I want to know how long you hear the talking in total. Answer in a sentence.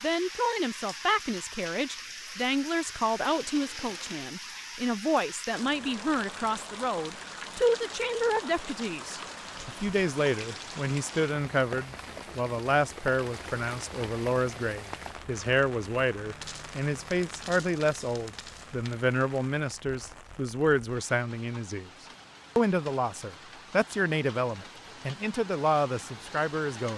The talking can be heard for 26 seconds in total.